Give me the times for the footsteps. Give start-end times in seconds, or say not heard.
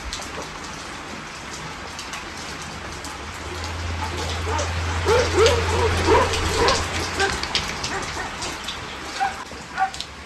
not heard.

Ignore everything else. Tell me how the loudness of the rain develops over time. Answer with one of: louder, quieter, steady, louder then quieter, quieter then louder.
louder then quieter.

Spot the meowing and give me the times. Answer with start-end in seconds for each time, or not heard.
not heard.